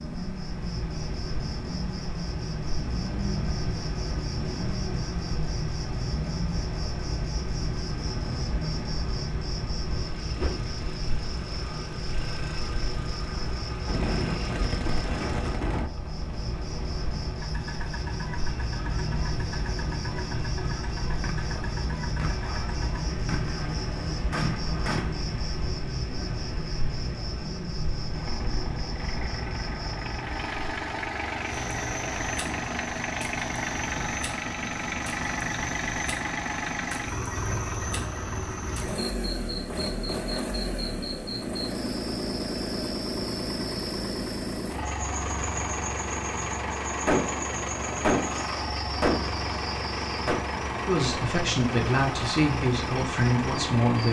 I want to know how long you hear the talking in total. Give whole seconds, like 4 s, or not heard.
3 s.